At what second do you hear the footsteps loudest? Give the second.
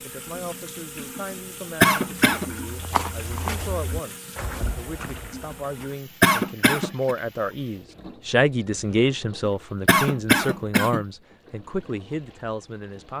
3 s.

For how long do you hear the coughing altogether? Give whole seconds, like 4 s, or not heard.
3 s.